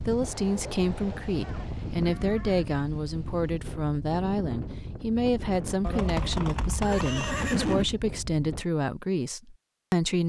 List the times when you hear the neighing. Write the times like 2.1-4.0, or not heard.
1.4-2.8, 5.8-7.8.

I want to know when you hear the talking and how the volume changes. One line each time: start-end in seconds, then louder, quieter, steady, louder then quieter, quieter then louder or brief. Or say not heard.
0.1-10.2 steady.